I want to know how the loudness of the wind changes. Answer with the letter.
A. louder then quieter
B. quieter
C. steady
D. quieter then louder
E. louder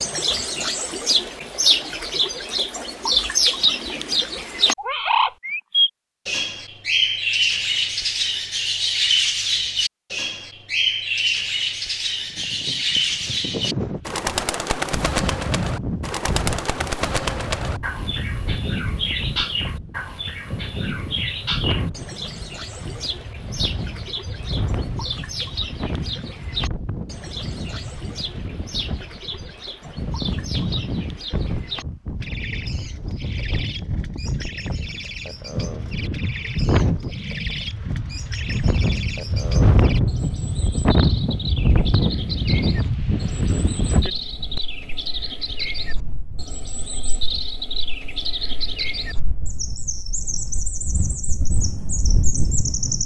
A.